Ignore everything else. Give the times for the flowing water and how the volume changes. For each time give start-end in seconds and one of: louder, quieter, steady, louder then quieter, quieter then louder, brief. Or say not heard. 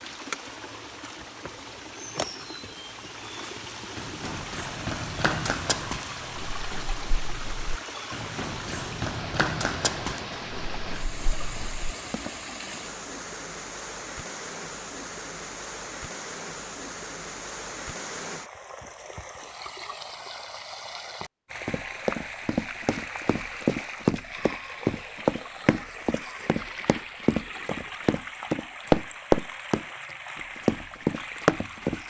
0.0-32.0 steady.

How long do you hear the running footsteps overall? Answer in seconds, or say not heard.
19 s.